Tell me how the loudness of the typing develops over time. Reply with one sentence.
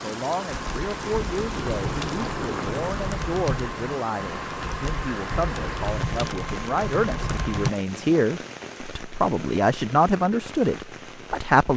The volume of the typing stays about the same.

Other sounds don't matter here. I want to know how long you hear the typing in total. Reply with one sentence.
The typing can be heard for 7 seconds in total.